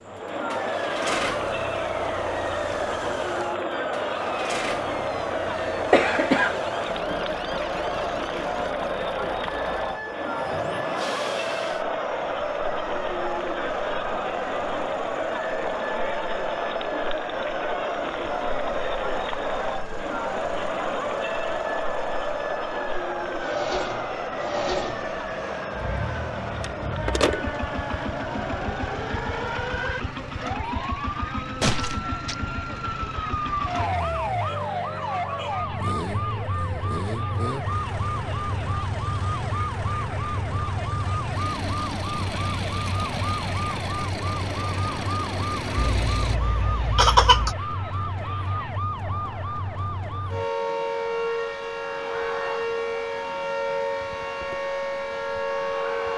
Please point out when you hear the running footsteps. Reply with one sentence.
You can't hear the running footsteps here.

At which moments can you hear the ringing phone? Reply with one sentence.
You can hear the ringing phone from 26.6 to 27.4 s.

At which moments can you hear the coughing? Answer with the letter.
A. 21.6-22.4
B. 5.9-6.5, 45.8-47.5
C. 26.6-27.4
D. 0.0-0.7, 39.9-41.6
B.